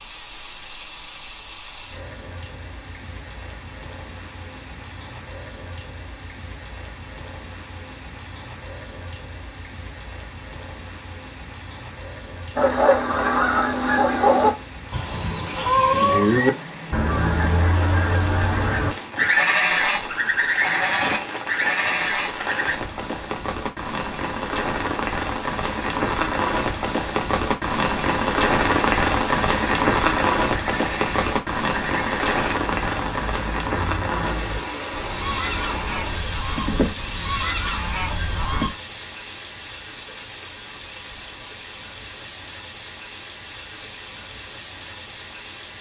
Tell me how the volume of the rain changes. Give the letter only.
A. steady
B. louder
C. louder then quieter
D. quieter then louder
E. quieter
C.